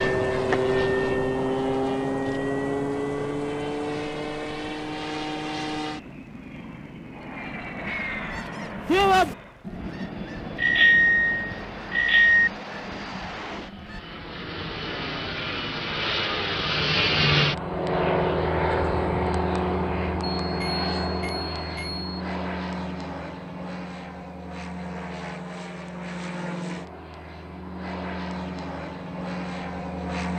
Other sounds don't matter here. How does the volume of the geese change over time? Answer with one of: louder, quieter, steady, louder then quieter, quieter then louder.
quieter.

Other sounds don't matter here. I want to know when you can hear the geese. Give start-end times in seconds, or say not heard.
7.8-14.0.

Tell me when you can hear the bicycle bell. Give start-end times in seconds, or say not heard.
10.6-12.5, 20.4-22.1.